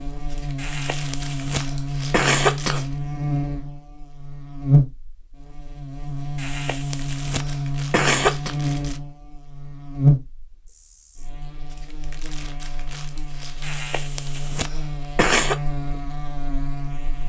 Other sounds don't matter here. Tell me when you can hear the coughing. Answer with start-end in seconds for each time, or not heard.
0.6-2.9, 6.3-8.6, 13.6-15.6.